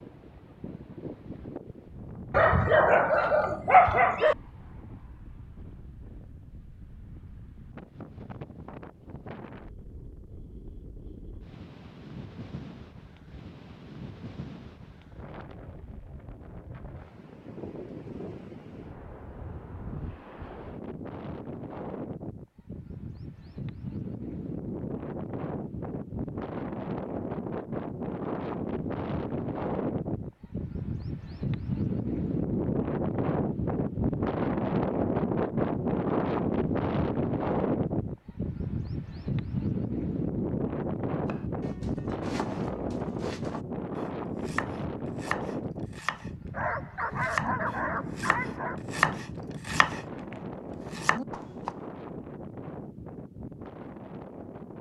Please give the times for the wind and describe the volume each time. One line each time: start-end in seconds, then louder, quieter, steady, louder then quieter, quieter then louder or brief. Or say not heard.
0.0-54.7 louder then quieter.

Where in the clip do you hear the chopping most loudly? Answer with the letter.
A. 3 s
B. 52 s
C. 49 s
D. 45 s
C.